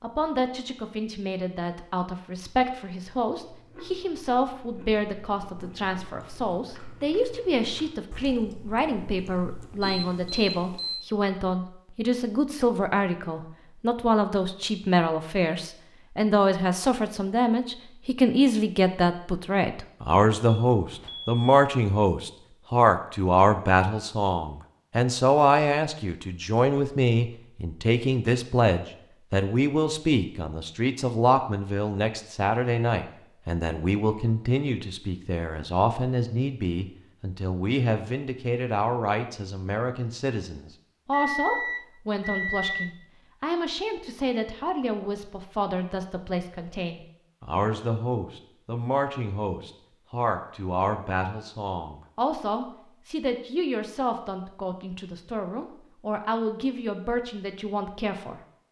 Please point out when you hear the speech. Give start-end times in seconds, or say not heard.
0.0-58.4.